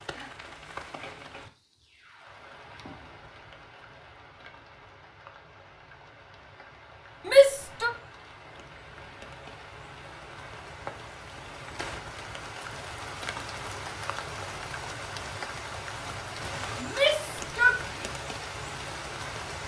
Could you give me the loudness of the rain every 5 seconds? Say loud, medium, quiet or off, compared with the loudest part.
medium, medium, loud, loud.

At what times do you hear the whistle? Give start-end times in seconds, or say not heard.
not heard.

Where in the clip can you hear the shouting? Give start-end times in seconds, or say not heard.
7.2-7.9, 16.8-18.1.